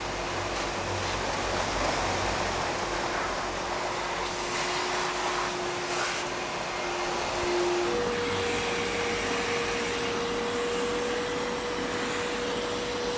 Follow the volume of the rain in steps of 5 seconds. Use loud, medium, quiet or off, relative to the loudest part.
loud, medium, medium.